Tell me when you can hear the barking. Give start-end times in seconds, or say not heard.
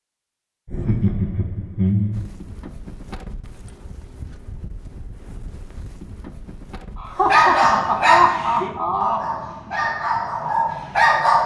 7.2-11.4.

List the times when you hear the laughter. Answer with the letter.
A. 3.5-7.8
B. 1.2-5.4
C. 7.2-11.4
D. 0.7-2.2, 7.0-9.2
D.